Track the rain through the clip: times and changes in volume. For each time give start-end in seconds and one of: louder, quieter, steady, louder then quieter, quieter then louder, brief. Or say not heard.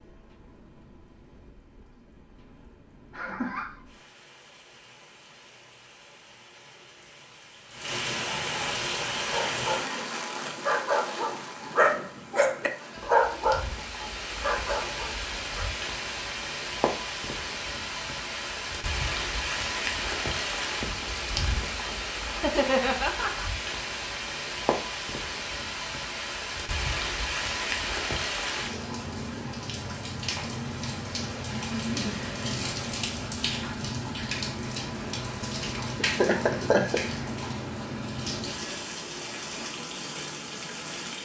0.0-41.2 louder.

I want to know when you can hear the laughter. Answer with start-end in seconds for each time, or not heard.
3.1-3.8, 22.4-23.4, 36.0-37.0.